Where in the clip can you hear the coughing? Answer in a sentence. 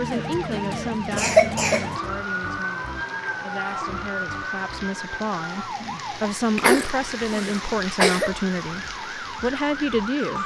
You can hear the coughing from 1.1 to 1.9 s and from 6.5 to 8.3 s.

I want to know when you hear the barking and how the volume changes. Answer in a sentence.
The barking can't be heard in this clip.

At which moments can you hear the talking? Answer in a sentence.
The talking can be heard from 0.0 to 10.4 s.